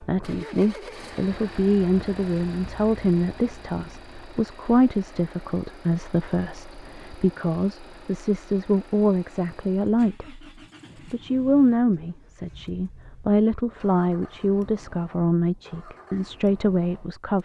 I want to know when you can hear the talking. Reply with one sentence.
You can hear the talking from 0.0 to 10.4 s and from 11.1 to 17.4 s.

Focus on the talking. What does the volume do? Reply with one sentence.
The volume of the talking stays about the same.